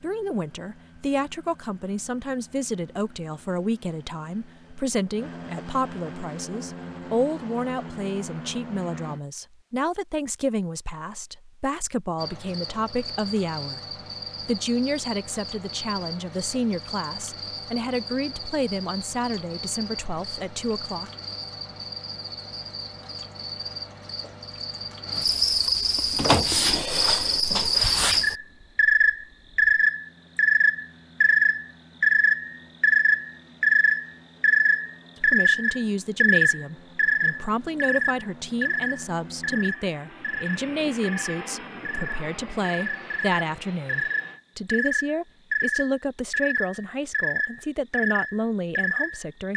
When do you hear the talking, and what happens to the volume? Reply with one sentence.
The talking can be heard from 0.0 to 21.1 s, at a steady volume; and from 35.2 to 49.5 s, at a steady volume.